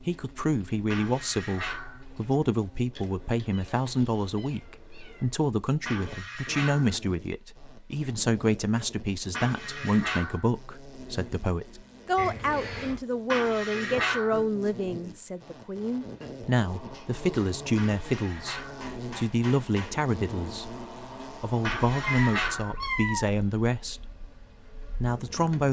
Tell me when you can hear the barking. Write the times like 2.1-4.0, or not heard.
0.9-2.0, 5.8-7.0, 9.3-10.5, 13.2-14.4, 17.8-18.9, 21.6-22.8.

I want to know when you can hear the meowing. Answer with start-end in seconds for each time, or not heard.
3.0-5.2, 12.2-13.0, 22.0-23.3.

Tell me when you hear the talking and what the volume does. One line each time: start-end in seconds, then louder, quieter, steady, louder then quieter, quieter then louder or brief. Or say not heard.
0.0-25.6 steady.